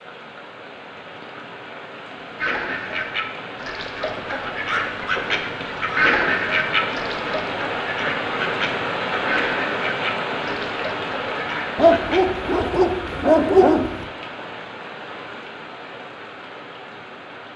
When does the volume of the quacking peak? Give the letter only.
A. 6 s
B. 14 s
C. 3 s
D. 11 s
A.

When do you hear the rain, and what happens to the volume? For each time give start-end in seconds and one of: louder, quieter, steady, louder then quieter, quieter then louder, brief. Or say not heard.
0.0-17.5 louder then quieter.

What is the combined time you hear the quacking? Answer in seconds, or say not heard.
10 s.